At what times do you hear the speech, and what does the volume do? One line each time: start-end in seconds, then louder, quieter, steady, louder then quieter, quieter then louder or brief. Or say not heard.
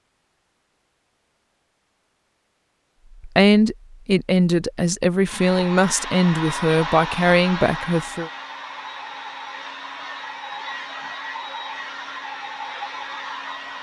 3.2-8.3 steady.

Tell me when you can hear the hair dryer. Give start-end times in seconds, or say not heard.
5.2-13.7.